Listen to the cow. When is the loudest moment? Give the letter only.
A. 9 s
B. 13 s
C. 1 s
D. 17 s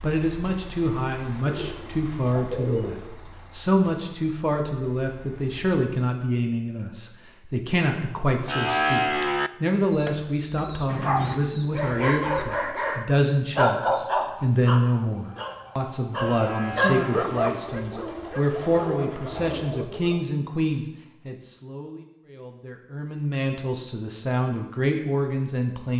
A.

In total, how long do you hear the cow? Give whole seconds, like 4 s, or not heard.
2 s.